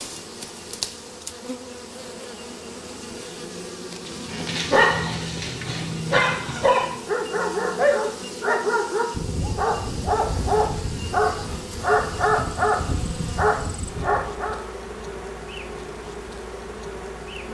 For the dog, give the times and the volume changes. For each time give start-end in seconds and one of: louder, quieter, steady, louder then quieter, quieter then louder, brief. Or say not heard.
4.0-14.6 steady.